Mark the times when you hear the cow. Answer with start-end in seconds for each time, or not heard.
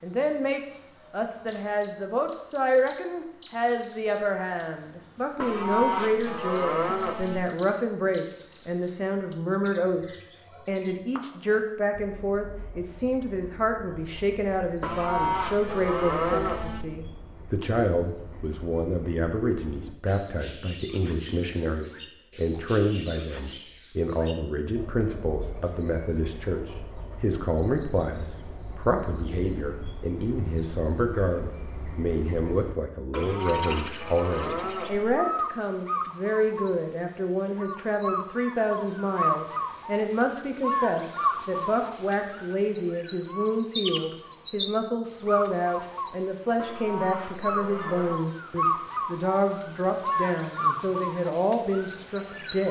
5.3-7.4, 14.8-16.9, 33.1-35.1, 46.5-48.2.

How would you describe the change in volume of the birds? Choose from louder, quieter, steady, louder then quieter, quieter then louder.
louder.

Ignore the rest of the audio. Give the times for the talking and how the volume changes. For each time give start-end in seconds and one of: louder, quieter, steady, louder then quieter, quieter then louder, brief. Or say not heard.
0.0-52.6 steady.